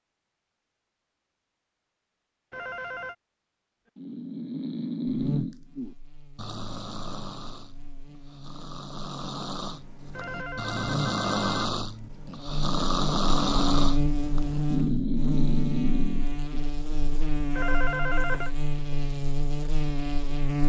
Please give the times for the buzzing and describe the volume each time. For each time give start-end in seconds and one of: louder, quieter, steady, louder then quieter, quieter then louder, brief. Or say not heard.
5.0-20.6 louder.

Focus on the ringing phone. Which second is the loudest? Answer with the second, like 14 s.
18 s.